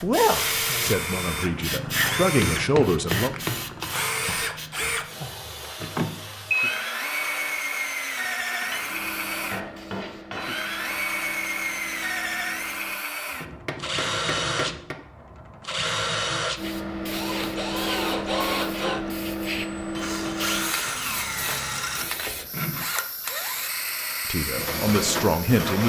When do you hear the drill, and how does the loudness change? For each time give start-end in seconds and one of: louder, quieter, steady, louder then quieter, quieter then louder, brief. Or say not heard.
0.0-25.8 steady.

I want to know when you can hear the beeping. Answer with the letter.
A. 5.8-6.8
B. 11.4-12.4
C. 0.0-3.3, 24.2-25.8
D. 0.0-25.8
A.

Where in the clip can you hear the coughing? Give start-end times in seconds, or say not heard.
not heard.